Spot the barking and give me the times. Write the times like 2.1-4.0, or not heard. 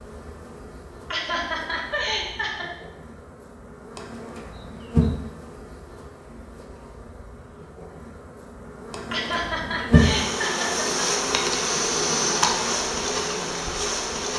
not heard.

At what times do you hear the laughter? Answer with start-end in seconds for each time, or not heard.
1.1-2.7, 9.1-11.1.